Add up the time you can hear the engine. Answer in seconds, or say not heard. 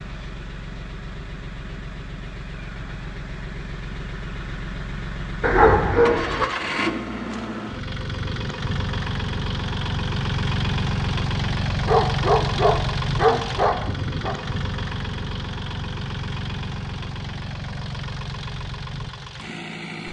20 s.